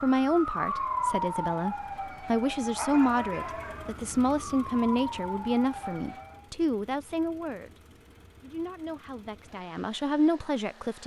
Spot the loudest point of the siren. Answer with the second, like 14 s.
1 s.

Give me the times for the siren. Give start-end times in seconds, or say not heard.
0.0-6.5.